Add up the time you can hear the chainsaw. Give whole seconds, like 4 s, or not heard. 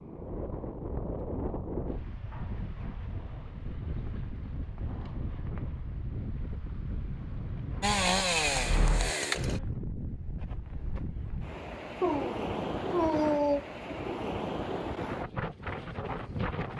2 s.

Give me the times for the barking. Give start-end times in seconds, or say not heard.
12.0-13.6.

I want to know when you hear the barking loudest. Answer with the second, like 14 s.
13 s.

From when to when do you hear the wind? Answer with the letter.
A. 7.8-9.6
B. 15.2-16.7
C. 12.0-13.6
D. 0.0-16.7
D.